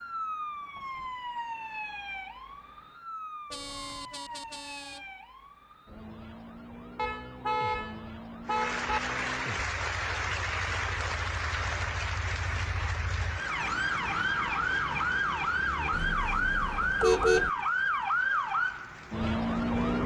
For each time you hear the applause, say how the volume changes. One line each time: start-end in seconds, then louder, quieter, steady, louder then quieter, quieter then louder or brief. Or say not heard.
8.4-20.0 quieter.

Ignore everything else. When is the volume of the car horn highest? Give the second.
17 s.